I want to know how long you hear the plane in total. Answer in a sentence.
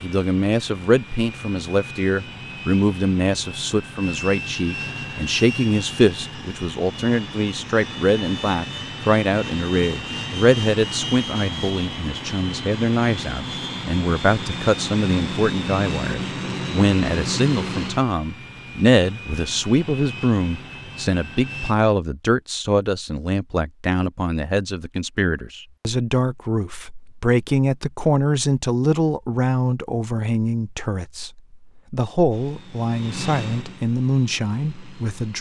The plane can be heard for 25 seconds in total.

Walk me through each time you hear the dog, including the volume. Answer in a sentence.
You can't hear the dog here.